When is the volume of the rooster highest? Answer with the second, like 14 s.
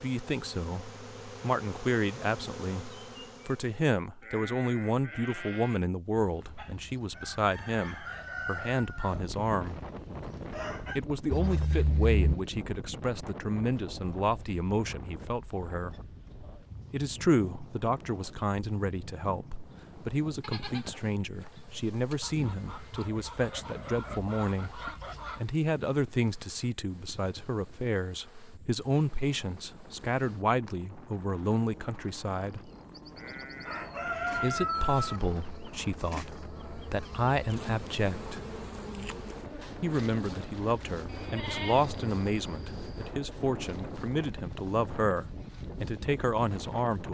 35 s.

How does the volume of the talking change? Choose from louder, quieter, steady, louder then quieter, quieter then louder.
steady.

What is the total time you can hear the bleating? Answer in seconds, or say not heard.
8 s.